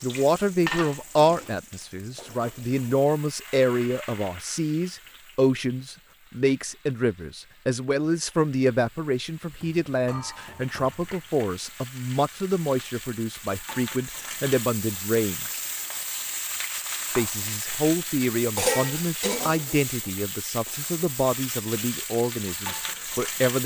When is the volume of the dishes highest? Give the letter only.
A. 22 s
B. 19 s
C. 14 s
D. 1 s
B.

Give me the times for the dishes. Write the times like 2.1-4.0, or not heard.
0.1-1.5, 18.6-19.9.